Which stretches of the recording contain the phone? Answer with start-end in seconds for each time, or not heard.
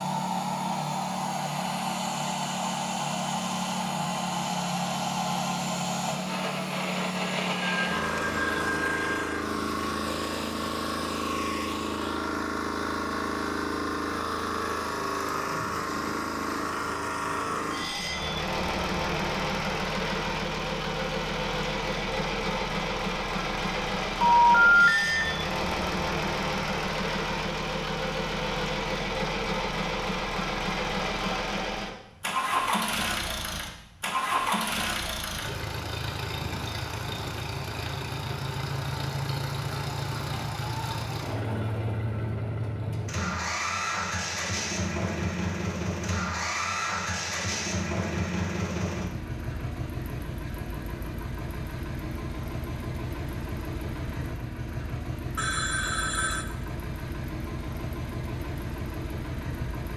7.6-9.4, 24.2-25.2, 55.4-56.5.